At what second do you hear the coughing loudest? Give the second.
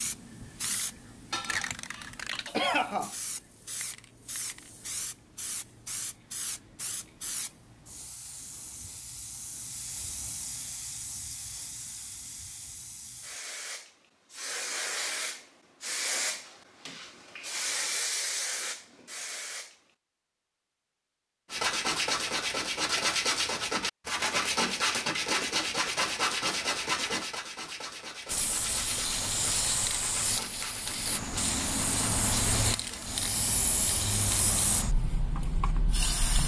3 s.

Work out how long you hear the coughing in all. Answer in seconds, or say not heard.
2 s.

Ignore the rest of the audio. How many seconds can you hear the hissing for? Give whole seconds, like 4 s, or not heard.
28 s.